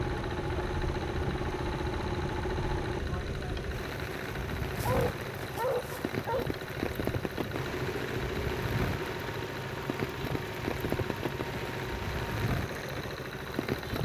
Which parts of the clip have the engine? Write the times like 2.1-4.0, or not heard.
0.0-14.0.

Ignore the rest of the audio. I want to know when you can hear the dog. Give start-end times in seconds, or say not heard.
4.8-6.5.